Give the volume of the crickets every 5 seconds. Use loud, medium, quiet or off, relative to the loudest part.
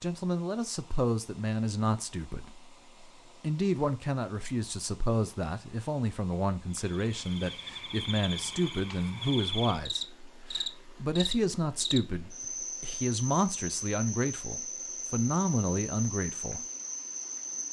off, loud, loud, loud.